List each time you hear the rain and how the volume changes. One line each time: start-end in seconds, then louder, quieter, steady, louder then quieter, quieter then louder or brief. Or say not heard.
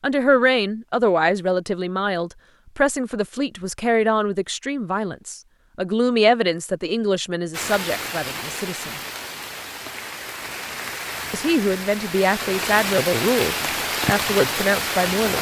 7.5-15.3 louder.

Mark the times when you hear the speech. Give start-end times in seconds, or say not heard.
0.0-9.0, 11.3-15.3.